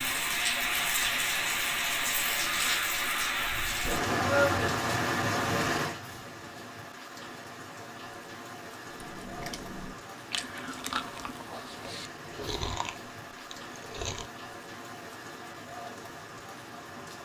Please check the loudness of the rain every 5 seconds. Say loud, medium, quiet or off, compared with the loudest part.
loud, medium, quiet, quiet.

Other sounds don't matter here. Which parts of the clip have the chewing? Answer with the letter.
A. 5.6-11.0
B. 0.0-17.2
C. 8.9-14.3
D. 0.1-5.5
C.